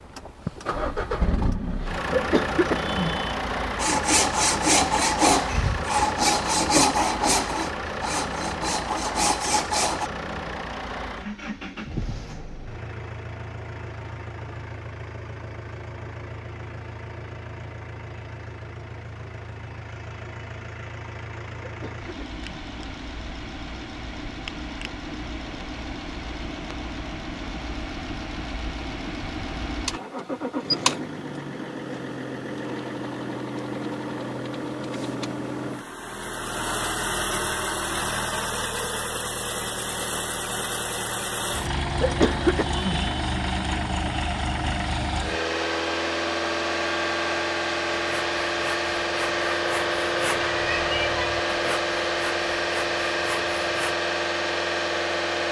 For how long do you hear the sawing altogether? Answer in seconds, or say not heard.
12 s.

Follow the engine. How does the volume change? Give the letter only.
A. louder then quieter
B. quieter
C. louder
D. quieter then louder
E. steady
D.